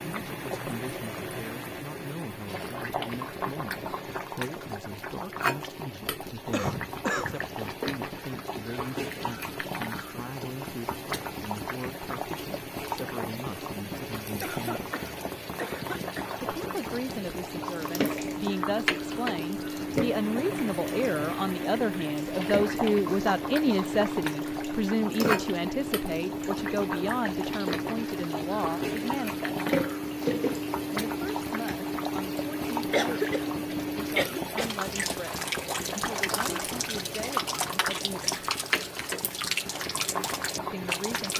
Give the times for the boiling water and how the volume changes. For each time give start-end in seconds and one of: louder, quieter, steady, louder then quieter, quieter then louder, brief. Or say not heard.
0.0-41.3 steady.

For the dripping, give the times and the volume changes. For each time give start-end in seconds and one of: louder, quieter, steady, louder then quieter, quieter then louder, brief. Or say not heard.
17.5-41.3 steady.